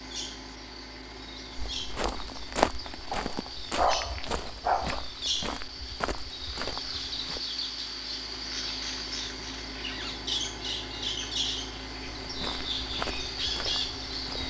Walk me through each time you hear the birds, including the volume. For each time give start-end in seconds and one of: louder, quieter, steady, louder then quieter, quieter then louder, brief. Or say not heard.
0.0-14.4 louder.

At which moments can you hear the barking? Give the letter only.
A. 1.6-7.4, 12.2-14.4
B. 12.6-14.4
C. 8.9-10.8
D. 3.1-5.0
D.